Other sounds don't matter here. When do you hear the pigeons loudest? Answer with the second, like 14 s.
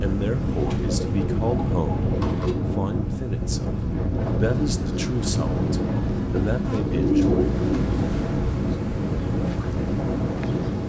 7 s.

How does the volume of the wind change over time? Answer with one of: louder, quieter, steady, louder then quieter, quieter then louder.
steady.